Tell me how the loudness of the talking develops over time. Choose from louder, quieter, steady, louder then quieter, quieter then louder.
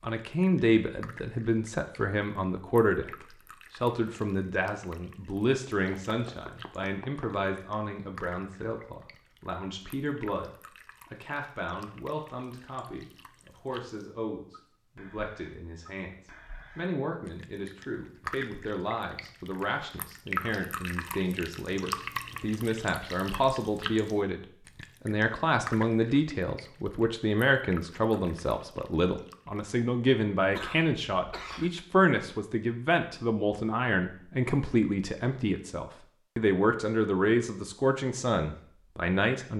quieter then louder.